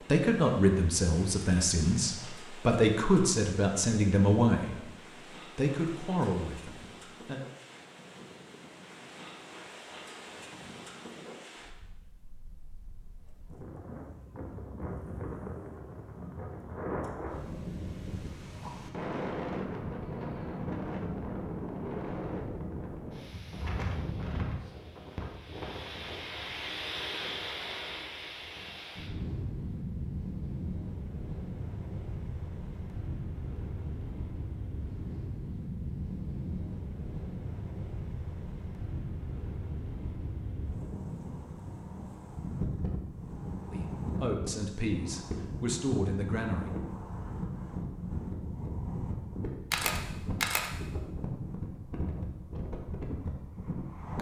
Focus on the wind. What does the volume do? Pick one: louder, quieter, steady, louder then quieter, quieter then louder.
louder.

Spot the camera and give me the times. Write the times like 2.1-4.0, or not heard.
49.7-50.7.